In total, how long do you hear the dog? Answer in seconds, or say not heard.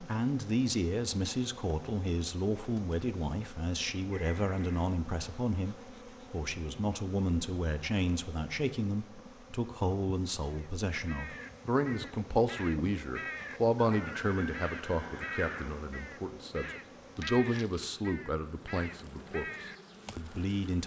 not heard.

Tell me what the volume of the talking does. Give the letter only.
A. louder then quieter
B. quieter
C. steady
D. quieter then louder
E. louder
C.